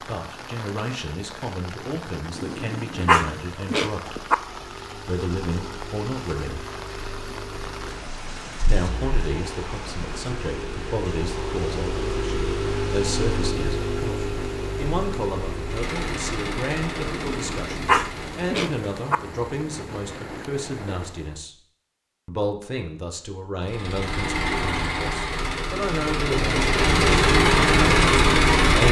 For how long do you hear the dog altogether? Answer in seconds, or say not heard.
4 s.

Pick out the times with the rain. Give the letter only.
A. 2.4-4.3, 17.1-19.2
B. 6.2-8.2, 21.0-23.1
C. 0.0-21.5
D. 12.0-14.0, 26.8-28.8
C.